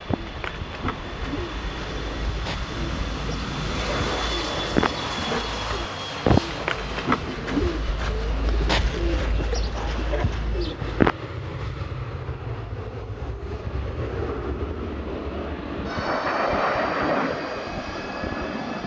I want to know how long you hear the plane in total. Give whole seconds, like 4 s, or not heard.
19 s.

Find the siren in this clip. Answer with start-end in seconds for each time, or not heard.
not heard.